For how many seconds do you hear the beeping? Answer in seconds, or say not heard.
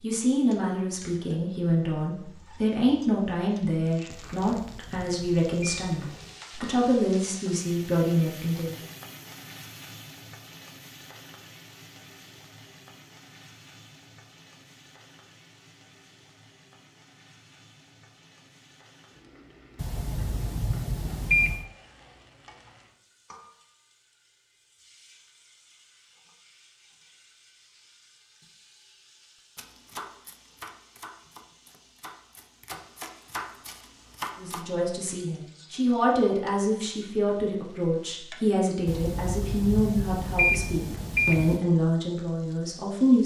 7 s.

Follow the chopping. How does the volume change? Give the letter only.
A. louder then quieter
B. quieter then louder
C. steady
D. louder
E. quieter
B.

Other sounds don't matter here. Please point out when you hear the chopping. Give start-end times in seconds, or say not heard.
29.6-34.6.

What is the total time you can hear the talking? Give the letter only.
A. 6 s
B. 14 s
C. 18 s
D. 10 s
C.